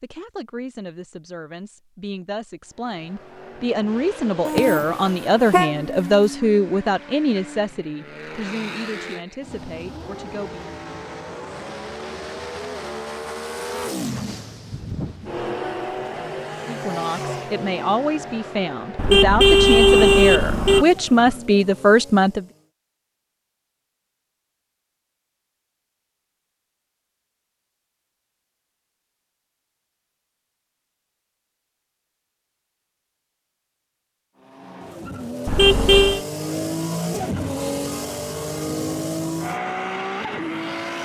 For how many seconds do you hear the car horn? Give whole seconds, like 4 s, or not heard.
4 s.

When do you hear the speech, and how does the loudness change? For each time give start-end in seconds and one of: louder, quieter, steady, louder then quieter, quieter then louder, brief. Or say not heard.
0.0-10.7 louder then quieter
16.6-22.4 louder.